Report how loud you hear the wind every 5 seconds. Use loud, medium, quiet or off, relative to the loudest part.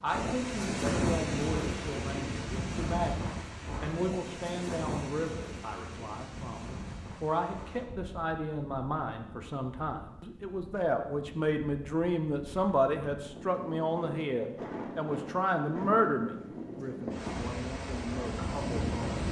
loud, medium, medium, loud.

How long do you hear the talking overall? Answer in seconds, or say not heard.
19 s.